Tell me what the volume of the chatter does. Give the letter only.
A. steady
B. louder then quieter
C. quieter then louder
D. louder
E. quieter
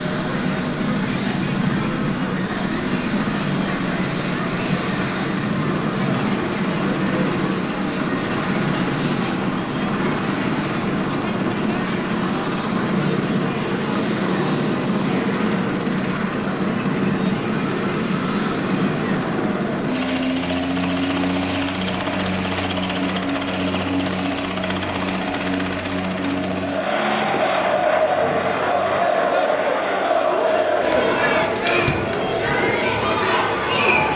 D.